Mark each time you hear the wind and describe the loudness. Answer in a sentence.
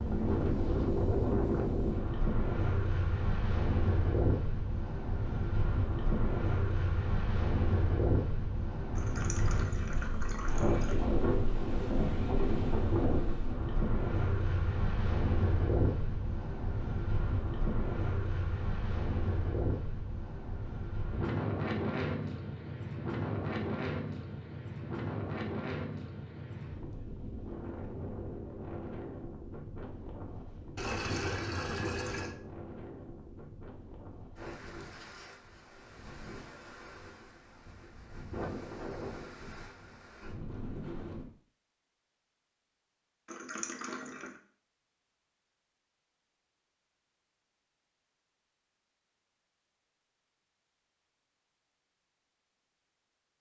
The wind can be heard from 0.0 to 41.2 s, getting quieter.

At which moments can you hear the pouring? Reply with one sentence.
The pouring can be heard from 8.9 to 10.9 s, from 30.8 to 32.4 s and from 43.2 to 44.4 s.